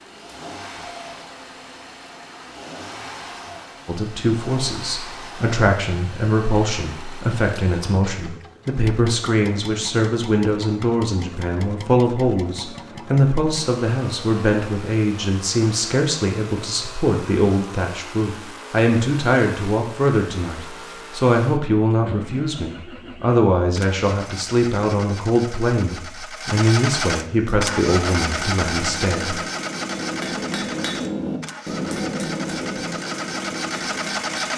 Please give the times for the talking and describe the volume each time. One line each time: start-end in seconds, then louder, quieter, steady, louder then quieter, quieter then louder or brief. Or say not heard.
3.9-29.4 steady.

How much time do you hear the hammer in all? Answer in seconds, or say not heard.
7 s.